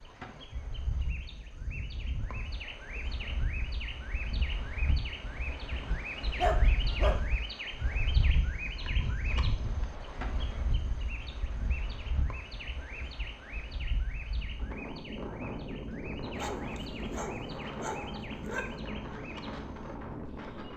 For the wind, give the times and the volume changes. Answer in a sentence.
You can hear the wind from 0.0 to 20.7 s, getting louder.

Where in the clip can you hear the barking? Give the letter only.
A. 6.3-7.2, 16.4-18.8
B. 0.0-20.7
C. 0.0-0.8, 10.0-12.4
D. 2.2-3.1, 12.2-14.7
A.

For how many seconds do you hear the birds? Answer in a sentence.
The birds can be heard for 21 seconds in total.